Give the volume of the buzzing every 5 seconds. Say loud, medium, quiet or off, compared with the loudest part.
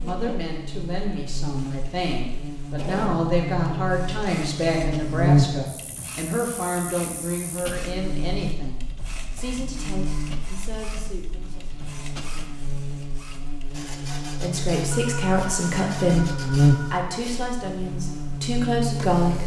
medium, loud, medium, loud.